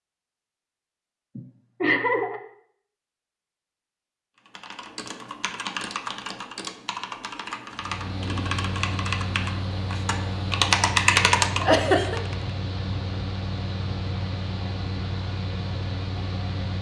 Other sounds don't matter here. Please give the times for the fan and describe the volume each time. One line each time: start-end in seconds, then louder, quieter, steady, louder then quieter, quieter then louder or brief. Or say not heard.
7.7-16.7 steady.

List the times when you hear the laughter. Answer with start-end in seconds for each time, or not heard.
1.4-2.4, 11.6-12.2.